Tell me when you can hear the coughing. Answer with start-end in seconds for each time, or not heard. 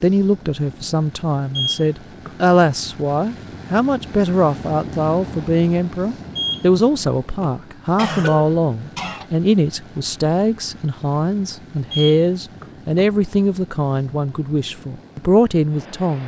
8.0-9.2.